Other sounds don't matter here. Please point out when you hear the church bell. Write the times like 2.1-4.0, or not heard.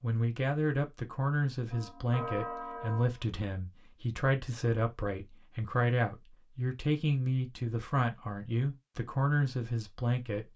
1.7-3.2.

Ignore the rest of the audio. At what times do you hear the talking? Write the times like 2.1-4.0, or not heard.
0.0-10.4.